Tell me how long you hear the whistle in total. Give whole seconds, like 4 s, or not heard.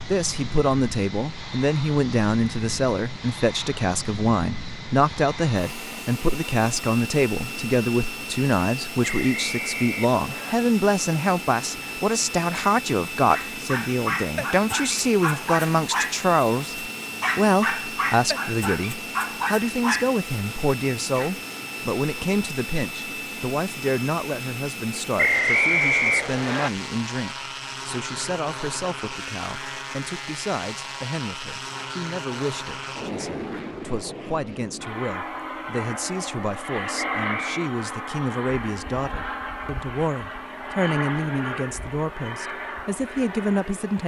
4 s.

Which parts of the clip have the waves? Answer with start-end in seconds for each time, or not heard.
not heard.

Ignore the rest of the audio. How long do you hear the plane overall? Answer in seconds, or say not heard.
44 s.